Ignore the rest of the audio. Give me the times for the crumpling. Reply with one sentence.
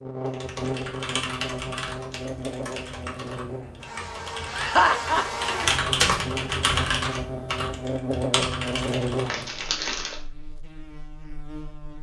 You can hear the crumpling from 9.2 to 10.2 s.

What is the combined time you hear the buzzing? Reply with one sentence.
The buzzing can be heard for 12 seconds in total.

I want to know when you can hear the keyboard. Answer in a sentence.
The keyboard can be heard from 0.2 to 9.7 s.